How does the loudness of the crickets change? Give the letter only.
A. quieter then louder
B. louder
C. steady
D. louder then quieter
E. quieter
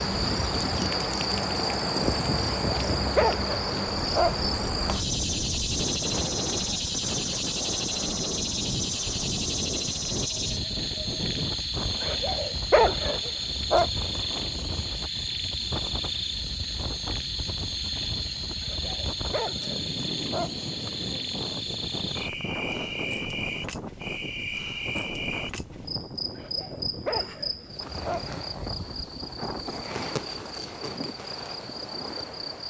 E.